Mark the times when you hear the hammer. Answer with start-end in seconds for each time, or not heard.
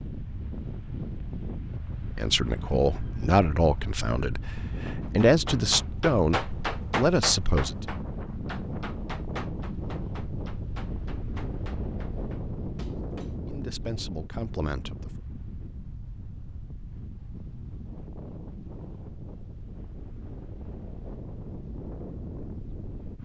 5.0-13.4.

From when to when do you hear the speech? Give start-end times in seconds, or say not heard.
2.0-7.8, 13.4-15.1.